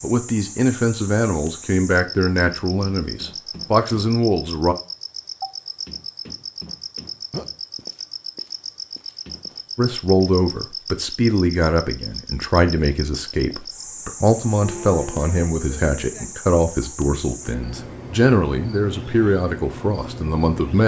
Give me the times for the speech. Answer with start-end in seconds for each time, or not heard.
0.0-4.8, 9.8-20.8.